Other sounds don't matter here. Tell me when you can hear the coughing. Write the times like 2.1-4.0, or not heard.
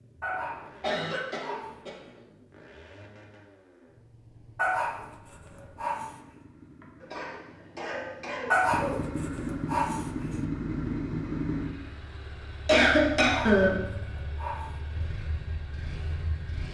0.8-2.0, 7.0-9.0, 12.7-13.8.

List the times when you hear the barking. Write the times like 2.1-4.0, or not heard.
0.2-2.1, 4.5-6.2, 8.5-10.4, 13.2-15.1.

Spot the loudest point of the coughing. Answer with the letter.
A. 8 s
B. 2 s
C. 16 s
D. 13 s
D.